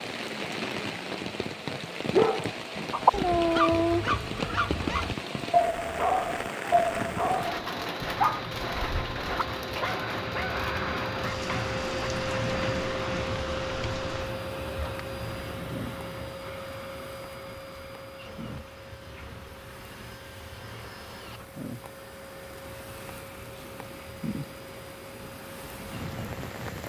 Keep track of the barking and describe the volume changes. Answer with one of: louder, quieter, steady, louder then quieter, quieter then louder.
quieter.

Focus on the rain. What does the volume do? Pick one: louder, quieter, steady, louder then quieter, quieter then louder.
quieter then louder.